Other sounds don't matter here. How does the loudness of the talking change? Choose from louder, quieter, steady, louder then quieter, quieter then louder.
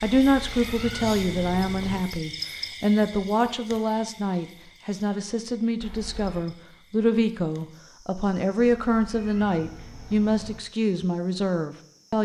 steady.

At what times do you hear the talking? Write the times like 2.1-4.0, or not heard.
0.0-12.2.